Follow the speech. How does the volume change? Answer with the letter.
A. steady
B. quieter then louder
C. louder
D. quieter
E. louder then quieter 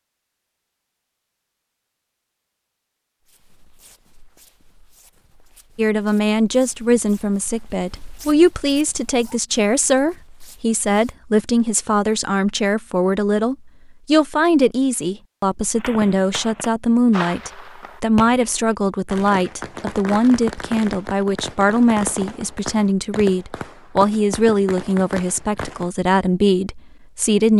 A.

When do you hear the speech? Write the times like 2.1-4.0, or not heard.
5.8-27.5.